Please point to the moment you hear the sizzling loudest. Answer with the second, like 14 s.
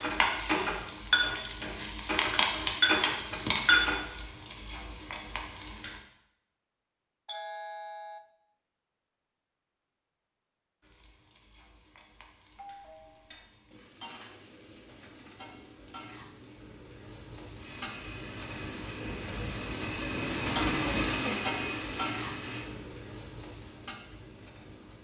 3 s.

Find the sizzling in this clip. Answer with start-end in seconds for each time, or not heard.
0.0-6.0, 10.8-24.9.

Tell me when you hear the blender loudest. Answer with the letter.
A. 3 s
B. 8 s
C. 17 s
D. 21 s
D.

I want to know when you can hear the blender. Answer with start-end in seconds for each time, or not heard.
17.6-22.7.